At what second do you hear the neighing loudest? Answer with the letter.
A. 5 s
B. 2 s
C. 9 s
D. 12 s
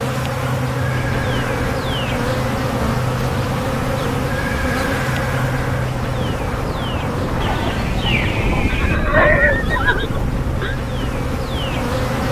C.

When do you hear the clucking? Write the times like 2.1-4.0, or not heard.
7.4-9.0.